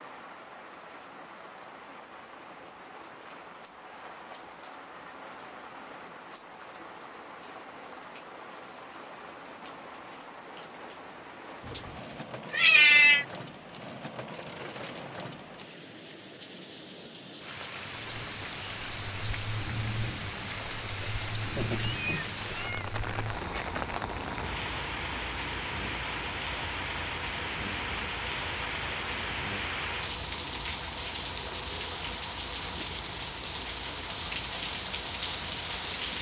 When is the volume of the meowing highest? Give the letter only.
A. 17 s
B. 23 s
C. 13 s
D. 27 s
C.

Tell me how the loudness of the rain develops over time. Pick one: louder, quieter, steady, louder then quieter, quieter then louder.
louder.